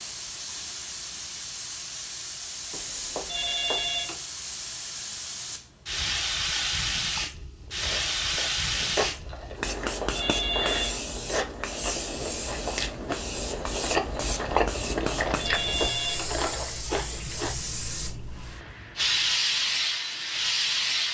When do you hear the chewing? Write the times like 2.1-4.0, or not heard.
7.8-17.6.